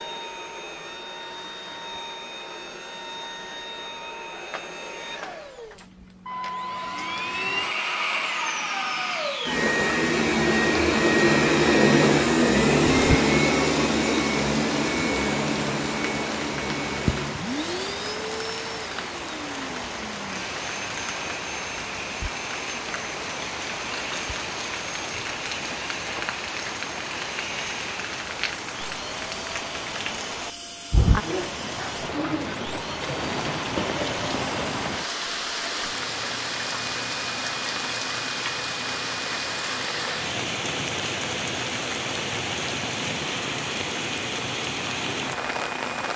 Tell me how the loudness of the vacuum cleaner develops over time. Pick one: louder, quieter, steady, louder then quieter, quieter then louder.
louder then quieter.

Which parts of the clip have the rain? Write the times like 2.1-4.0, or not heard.
12.8-46.1.